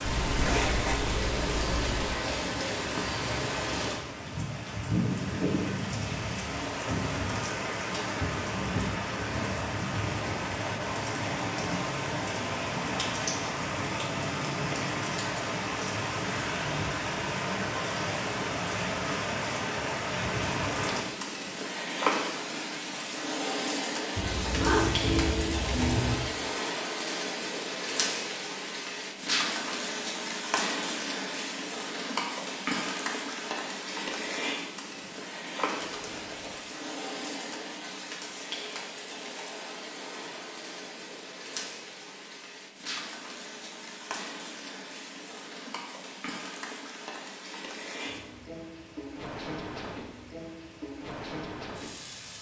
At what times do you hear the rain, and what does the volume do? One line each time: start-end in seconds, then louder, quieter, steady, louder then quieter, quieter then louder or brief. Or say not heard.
0.0-52.3 quieter.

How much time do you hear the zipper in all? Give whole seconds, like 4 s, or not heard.
5 s.